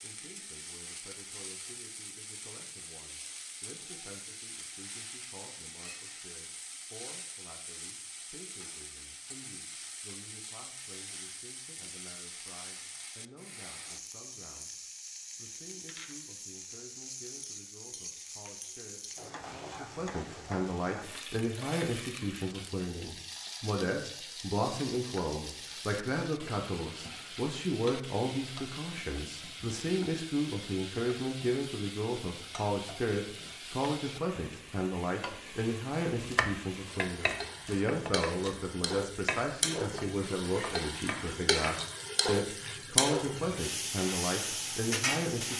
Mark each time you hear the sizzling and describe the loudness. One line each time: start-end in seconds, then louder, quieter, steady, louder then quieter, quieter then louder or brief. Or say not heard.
0.0-45.5 louder.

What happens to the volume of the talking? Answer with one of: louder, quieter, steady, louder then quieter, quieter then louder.
louder.